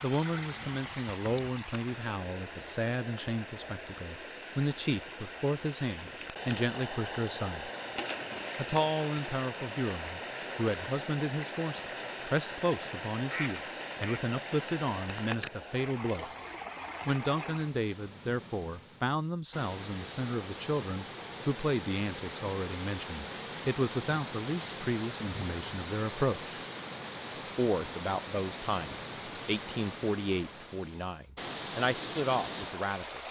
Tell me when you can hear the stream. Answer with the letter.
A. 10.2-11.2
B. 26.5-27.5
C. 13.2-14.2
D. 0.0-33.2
D.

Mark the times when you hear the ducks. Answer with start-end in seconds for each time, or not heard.
13.2-14.2.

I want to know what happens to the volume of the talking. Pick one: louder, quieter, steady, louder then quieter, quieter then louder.
steady.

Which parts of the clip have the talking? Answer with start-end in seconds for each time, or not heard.
0.0-7.7, 8.6-16.2, 17.1-26.6, 27.6-33.2.